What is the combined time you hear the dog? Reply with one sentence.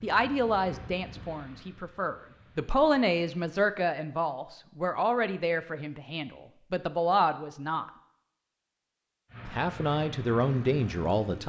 You can't hear the dog here.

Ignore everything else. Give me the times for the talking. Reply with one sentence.
You can hear the talking from 0.0 to 7.9 s and from 9.4 to 11.4 s.